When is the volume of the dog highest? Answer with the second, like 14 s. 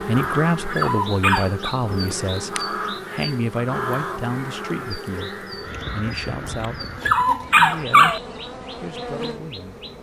8 s.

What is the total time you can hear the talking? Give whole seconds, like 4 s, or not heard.
9 s.